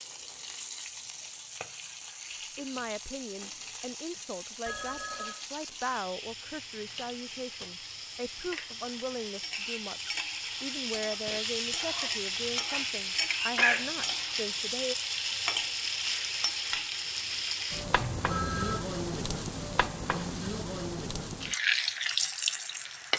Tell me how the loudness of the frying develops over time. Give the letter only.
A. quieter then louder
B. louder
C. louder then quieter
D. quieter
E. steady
B.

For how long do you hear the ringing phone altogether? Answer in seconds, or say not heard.
2 s.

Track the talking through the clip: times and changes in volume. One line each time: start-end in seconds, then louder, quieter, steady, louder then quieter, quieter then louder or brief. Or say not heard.
2.4-14.9 steady.